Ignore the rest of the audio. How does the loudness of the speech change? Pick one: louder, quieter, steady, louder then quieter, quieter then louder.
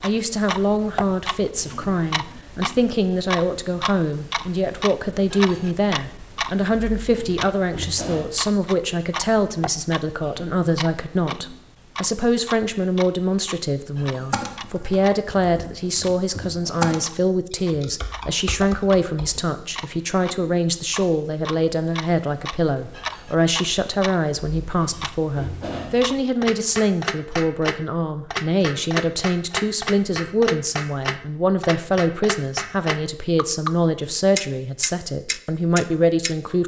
steady.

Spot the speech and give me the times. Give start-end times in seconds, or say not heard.
0.0-36.6.